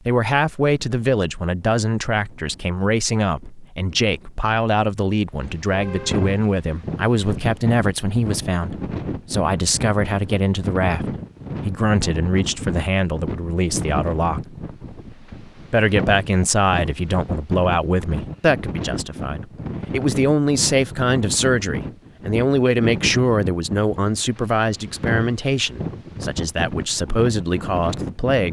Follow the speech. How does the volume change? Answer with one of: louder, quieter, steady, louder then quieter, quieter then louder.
steady.